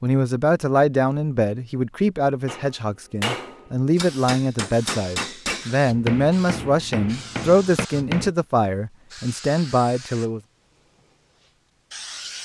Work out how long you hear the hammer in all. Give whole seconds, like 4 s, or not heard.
6 s.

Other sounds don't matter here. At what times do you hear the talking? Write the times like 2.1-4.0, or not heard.
0.0-10.4.